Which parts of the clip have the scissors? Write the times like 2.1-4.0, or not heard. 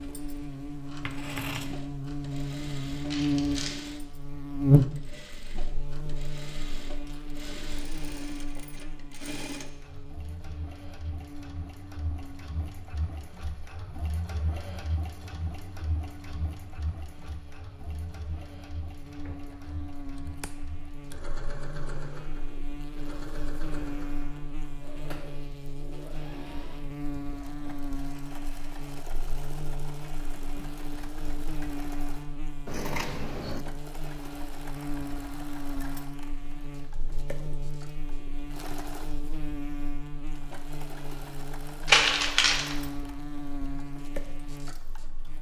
1.0-1.8, 19.2-21.1, 32.6-33.6.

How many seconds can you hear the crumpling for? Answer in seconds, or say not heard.
2 s.